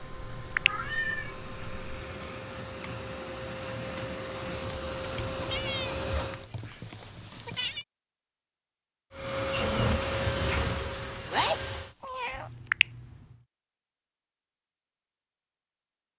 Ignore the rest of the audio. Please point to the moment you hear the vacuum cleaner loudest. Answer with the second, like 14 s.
10 s.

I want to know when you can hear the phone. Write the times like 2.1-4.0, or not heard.
0.1-0.9, 12.3-13.1.